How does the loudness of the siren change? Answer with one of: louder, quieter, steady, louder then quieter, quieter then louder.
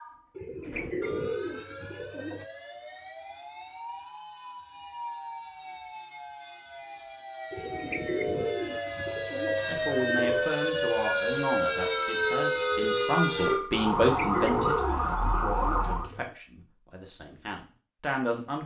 louder.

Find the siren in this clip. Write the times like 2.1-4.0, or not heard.
0.0-16.1.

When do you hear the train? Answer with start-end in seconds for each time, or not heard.
not heard.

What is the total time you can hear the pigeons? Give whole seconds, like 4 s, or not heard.
8 s.